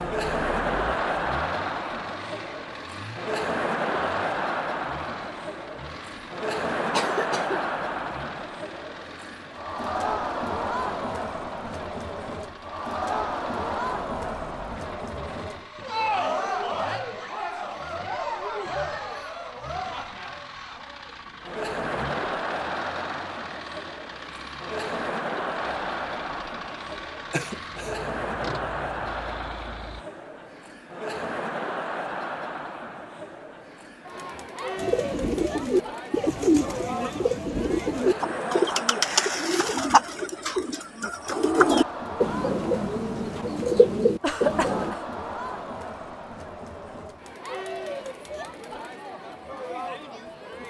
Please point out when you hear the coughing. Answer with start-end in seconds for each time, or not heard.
6.9-7.7, 27.3-27.9, 44.2-45.1.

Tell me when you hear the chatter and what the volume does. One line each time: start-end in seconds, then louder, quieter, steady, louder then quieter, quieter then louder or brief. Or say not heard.
0.0-50.6 quieter.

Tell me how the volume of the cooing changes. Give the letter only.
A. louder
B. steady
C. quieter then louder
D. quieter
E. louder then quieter
B.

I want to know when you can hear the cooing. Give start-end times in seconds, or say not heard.
34.8-45.0.